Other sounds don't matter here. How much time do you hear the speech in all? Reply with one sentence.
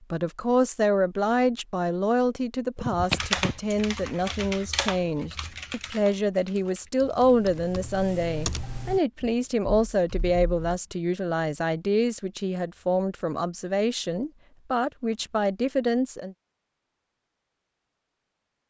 You can hear the speech for 16 seconds altogether.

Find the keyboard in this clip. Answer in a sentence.
The keyboard can be heard from 2.8 to 10.8 s.